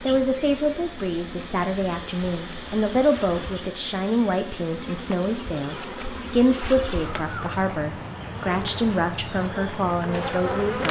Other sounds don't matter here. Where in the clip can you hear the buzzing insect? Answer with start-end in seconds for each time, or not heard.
0.0-10.8.